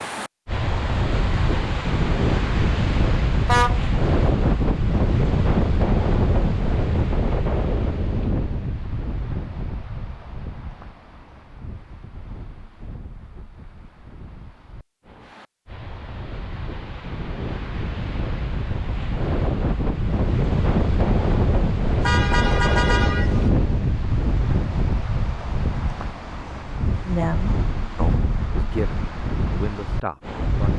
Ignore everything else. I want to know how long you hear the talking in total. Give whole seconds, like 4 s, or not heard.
4 s.